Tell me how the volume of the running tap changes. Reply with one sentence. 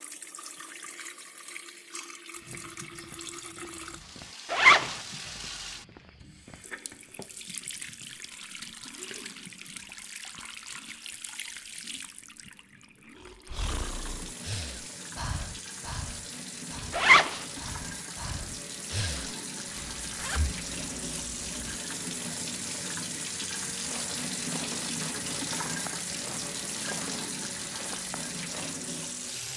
The loudness of the running tap goes up.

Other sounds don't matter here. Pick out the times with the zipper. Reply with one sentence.
You can hear the zipper from 4.5 to 5.0 s, from 16.9 to 17.4 s and from 19.8 to 21.8 s.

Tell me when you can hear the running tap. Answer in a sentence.
You can hear the running tap from 0.0 to 29.5 s.